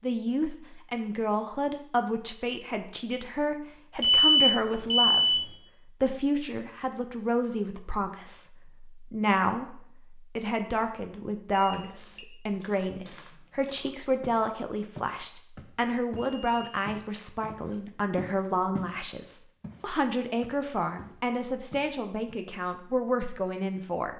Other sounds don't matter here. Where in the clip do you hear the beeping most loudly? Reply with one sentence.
The loudest moment of the beeping is at 4 seconds.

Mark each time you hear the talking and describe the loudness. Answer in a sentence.
The talking can be heard from 0.0 to 24.1 s, at a steady volume.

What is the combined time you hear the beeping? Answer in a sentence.
You can hear the beeping for 3 seconds altogether.